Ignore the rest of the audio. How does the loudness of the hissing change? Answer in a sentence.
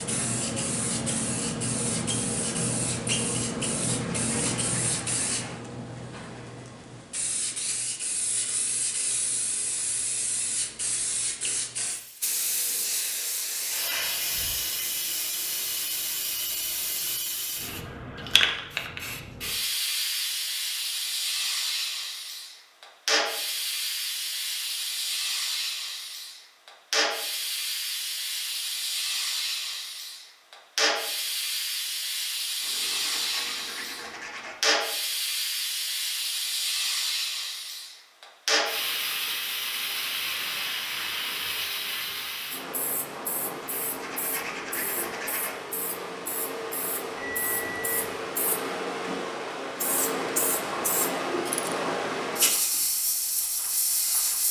The loudness of the hissing stays about the same.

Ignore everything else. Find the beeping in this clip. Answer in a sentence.
You can hear the beeping from 47.1 to 48.1 s.